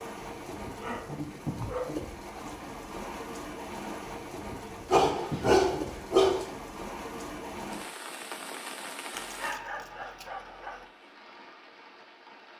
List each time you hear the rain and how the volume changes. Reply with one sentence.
You can hear the rain from 0.0 to 12.5 s, getting quieter.